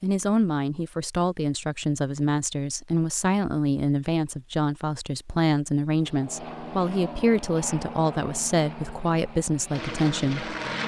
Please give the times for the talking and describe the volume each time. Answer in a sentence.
You can hear the talking from 0.0 to 10.6 s, at a steady volume.